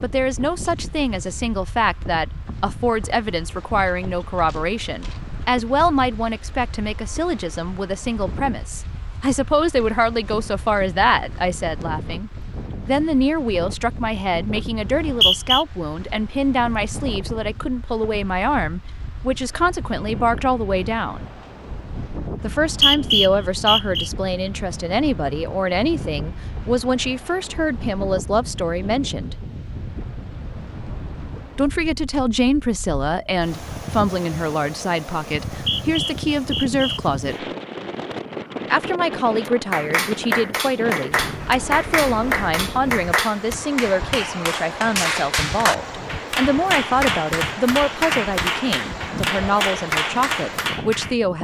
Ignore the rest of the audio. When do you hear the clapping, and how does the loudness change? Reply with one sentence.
The clapping can be heard from 39.5 to 51.1 s, at a steady volume.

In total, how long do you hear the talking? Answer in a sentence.
You can hear the talking for 47 seconds altogether.